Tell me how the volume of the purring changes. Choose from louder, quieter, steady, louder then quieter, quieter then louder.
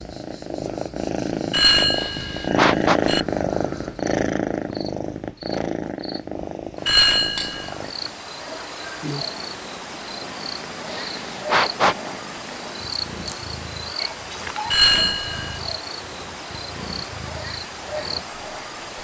quieter.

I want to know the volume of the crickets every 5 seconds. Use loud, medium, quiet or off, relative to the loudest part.
quiet, loud, loud, loud.